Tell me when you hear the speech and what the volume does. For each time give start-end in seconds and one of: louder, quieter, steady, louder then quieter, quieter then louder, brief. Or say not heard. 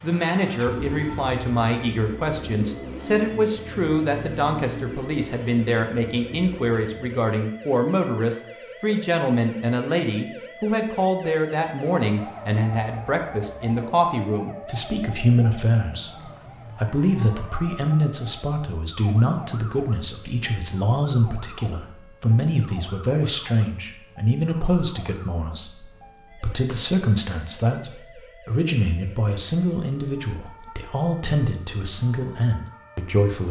0.0-33.4 steady.